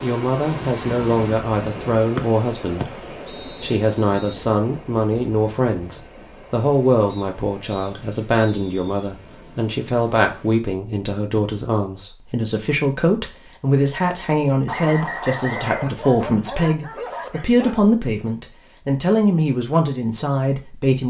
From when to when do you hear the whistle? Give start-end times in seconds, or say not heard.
2.1-4.3, 7.0-9.1, 14.7-15.9.